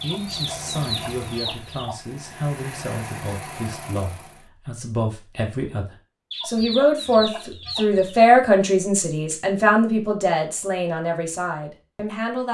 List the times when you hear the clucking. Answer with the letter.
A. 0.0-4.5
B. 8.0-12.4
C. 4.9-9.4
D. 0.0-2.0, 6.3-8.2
D.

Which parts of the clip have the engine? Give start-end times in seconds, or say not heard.
0.0-4.5.